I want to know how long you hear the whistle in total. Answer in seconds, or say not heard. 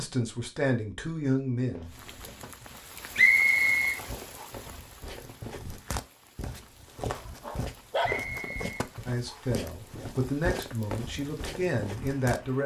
3 s.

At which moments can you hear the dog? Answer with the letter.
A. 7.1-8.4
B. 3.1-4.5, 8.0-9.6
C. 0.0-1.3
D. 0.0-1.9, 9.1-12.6
A.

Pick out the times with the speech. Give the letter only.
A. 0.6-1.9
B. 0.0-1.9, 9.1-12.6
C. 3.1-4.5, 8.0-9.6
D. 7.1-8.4
B.